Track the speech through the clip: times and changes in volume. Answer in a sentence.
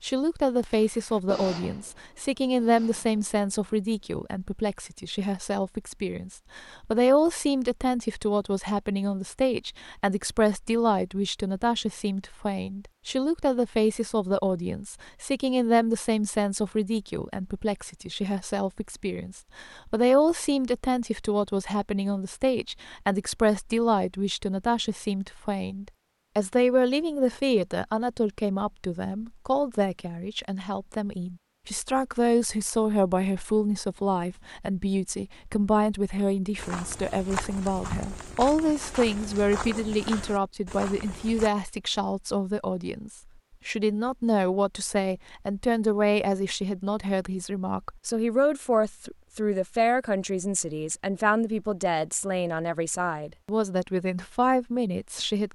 The speech can be heard from 0.0 to 55.4 s, at a steady volume.